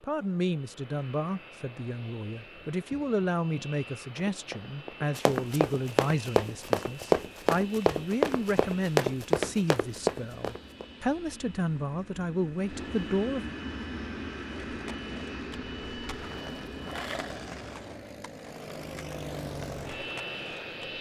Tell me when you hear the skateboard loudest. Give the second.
17 s.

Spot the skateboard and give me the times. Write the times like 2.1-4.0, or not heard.
14.5-20.8.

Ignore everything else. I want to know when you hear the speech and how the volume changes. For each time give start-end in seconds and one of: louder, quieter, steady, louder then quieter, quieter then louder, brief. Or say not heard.
0.0-13.4 steady.